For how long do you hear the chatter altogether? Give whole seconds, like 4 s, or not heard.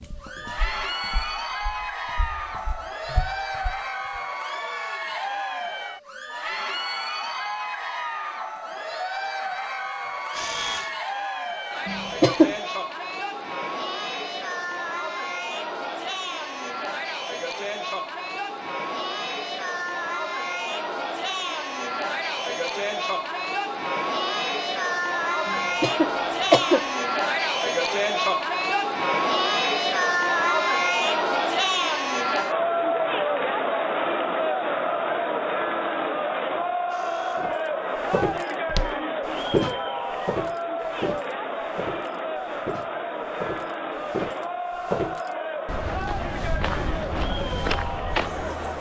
49 s.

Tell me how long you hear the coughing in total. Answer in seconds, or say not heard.
2 s.